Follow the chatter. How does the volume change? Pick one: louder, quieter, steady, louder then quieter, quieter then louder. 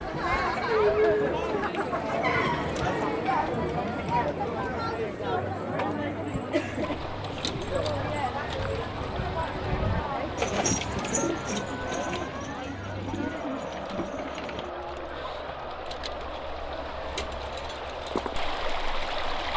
quieter.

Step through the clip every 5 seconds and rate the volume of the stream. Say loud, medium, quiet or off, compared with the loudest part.
off, loud, medium, loud.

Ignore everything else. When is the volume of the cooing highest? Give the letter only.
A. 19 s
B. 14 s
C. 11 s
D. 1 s
C.